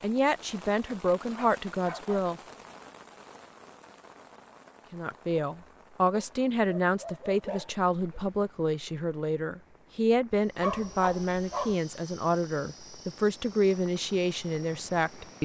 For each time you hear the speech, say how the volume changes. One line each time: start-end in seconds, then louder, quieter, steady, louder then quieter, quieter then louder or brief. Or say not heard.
0.0-2.4 brief
4.9-15.4 steady.